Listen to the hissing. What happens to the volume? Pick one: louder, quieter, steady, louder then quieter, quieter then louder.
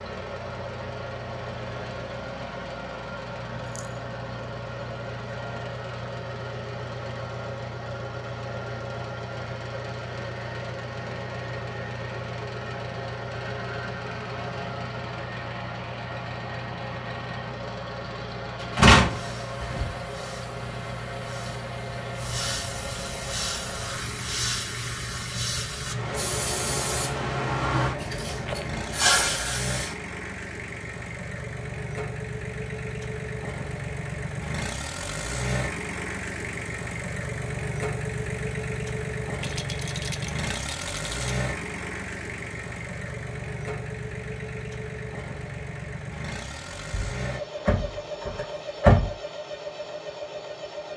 louder.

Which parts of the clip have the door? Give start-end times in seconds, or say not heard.
18.6-19.9, 46.9-49.1.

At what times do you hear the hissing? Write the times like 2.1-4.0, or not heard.
19.0-29.9.